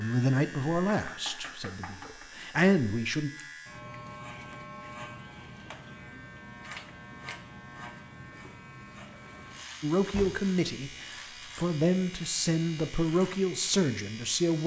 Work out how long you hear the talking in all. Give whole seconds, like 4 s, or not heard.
8 s.